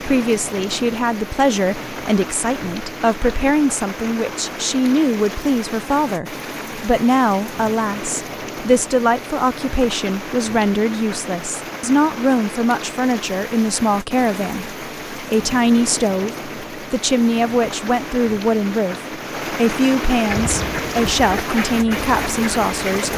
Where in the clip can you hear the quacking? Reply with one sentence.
You can hear the quacking from 20.2 to 23.1 s.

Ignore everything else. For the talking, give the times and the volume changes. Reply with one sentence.
You can hear the talking from 0.0 to 23.1 s, at a steady volume.